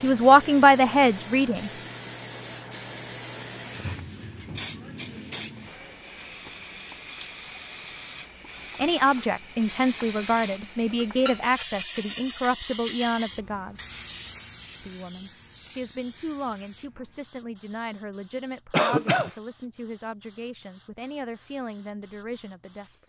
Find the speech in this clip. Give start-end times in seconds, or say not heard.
0.0-1.7, 8.8-13.9, 14.8-22.9.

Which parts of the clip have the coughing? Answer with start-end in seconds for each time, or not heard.
18.7-19.3.